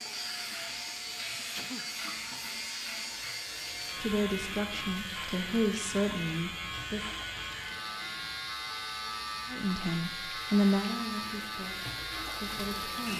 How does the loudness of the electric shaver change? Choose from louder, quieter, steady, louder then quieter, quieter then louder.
steady.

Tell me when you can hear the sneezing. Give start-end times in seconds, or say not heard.
1.2-1.9.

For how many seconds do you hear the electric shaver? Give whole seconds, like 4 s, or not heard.
13 s.